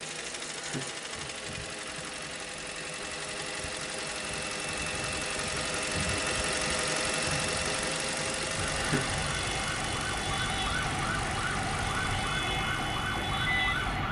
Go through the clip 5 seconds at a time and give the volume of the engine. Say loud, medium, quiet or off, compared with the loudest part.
medium, loud, medium.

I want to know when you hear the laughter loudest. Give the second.
9 s.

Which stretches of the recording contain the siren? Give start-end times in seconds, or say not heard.
8.6-14.0.